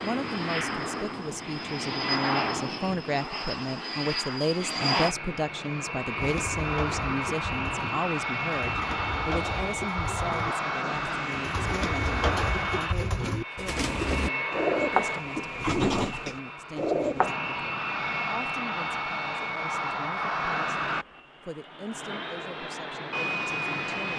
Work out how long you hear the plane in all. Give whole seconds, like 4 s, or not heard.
24 s.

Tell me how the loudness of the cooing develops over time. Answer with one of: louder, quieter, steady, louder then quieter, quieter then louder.
louder.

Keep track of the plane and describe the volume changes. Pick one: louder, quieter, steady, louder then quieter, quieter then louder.
steady.